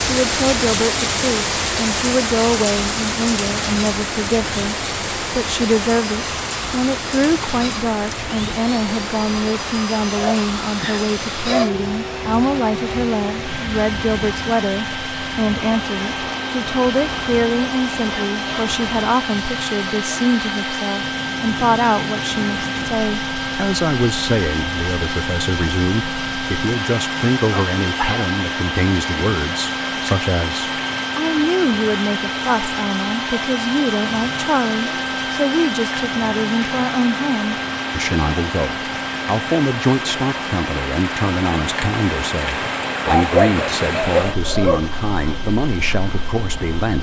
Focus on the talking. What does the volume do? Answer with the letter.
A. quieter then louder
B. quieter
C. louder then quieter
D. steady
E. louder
D.